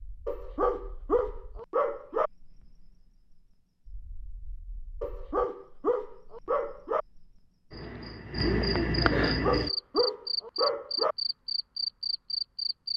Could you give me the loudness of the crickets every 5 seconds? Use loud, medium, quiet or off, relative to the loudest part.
quiet, loud, loud.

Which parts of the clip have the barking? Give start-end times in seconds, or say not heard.
0.2-2.3, 5.0-7.0, 9.2-11.2.